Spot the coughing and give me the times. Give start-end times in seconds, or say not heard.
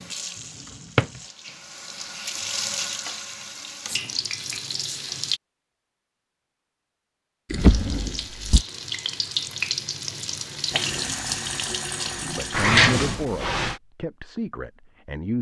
not heard.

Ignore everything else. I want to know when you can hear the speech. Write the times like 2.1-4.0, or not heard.
12.3-15.3.